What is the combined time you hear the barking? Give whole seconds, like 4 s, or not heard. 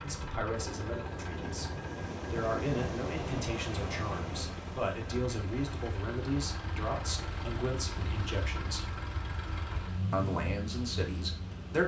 not heard.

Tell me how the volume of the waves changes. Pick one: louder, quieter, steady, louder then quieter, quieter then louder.
quieter.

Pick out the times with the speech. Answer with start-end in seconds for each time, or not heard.
0.0-8.9, 10.1-11.8.